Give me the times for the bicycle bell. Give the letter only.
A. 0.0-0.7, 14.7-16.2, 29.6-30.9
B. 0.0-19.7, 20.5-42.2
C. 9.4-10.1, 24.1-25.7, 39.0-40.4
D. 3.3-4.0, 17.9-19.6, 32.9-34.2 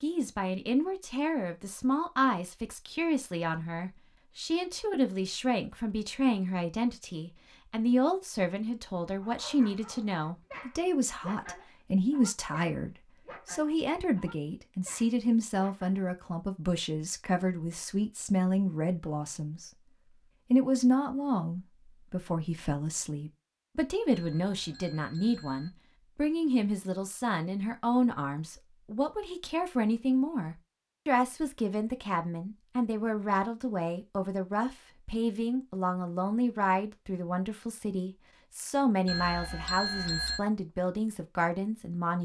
C.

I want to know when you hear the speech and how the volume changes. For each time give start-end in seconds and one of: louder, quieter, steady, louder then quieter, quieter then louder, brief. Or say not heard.
0.0-19.7 steady
20.5-42.2 steady.